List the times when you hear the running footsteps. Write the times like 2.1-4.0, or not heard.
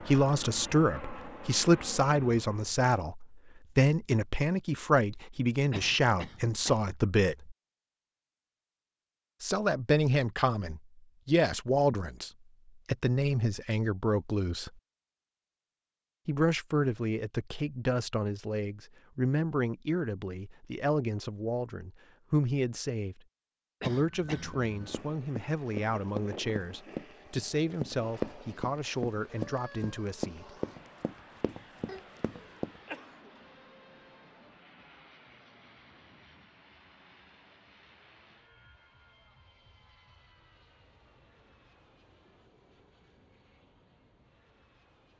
24.5-32.8.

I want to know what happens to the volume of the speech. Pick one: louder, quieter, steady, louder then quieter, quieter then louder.
quieter.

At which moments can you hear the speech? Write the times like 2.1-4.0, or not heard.
0.1-7.5, 9.4-14.7, 16.2-23.2, 23.8-30.5.